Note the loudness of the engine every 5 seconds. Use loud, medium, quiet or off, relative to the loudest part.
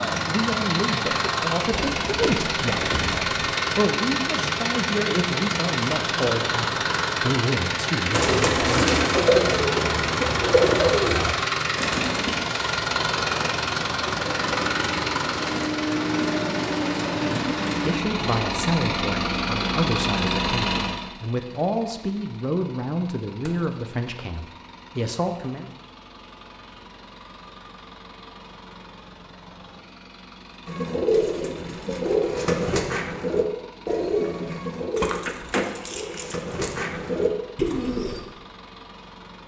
loud, loud, loud, loud, medium, quiet, quiet, quiet.